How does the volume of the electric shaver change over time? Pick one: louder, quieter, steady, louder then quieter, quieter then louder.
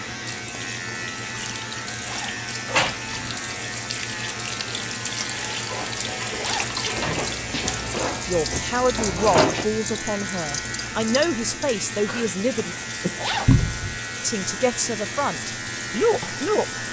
steady.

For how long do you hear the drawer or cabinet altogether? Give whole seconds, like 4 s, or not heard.
4 s.